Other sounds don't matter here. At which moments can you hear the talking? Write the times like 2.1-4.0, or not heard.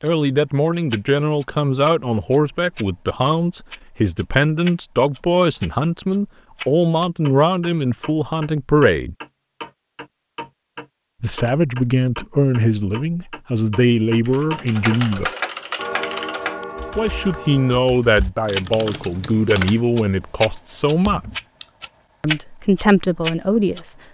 0.0-9.2, 11.2-15.3, 16.9-21.3, 22.2-23.9.